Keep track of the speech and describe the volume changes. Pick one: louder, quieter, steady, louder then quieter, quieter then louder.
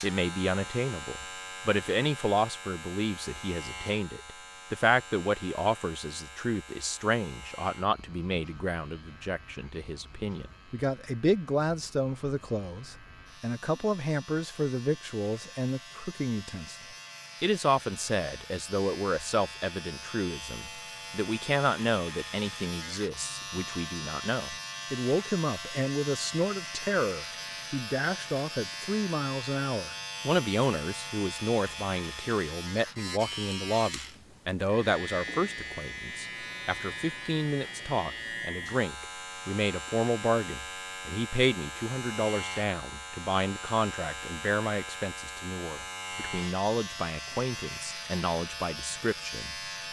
steady.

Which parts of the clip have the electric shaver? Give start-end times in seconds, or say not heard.
0.0-49.8.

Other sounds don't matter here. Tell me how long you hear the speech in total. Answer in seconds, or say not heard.
49 s.